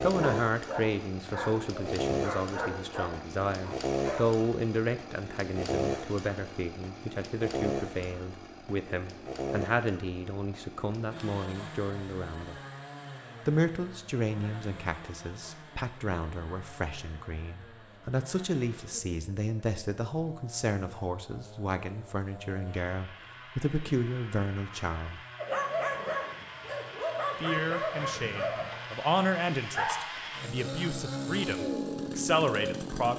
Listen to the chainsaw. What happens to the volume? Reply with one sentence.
The loudness of the chainsaw goes down, then up.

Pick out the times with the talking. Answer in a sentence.
The talking can be heard from 0.0 to 12.6 s, from 13.4 to 25.2 s and from 27.4 to 33.1 s.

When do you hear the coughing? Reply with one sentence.
You can't hear the coughing here.